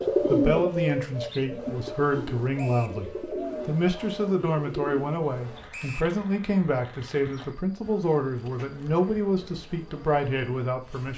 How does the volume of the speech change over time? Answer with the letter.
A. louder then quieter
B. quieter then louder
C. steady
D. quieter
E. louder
C.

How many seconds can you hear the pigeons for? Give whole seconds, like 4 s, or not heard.
5 s.